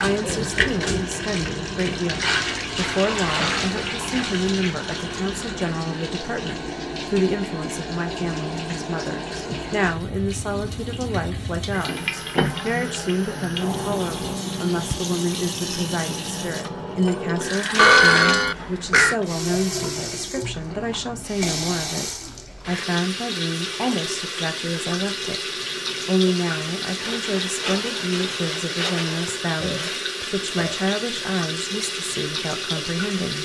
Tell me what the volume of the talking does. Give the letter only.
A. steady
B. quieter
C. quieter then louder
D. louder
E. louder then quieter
A.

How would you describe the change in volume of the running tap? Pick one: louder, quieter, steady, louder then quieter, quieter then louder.
steady.